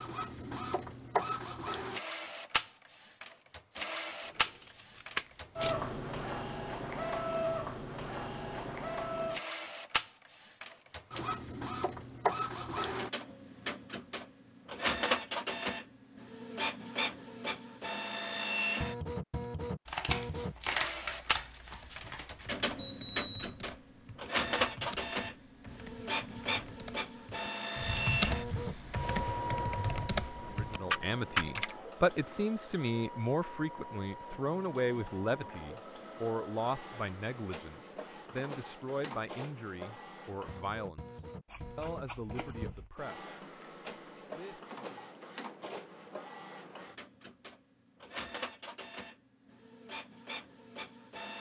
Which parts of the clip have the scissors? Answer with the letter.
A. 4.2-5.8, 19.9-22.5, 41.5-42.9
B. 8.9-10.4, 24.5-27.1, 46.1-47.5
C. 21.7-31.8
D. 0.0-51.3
A.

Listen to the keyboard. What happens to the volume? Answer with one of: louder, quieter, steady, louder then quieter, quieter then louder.
louder.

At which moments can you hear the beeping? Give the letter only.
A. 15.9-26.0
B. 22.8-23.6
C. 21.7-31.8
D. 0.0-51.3
B.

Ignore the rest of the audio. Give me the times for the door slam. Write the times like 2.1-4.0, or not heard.
not heard.